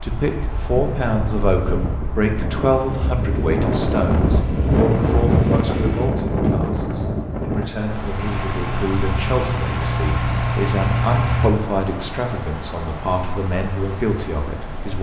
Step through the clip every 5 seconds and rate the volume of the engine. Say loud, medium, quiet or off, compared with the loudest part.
quiet, medium, loud.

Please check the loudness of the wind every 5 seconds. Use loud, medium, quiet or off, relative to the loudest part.
loud, loud, medium.